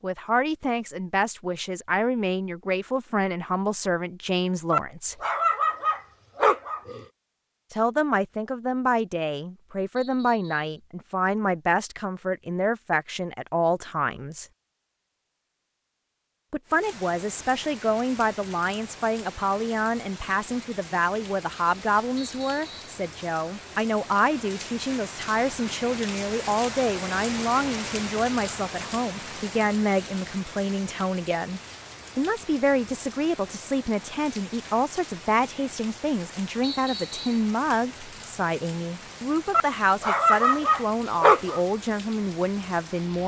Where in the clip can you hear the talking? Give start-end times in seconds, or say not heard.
0.0-5.2, 7.7-14.4, 16.5-43.2.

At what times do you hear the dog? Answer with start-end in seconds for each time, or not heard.
4.7-7.0, 39.5-41.6.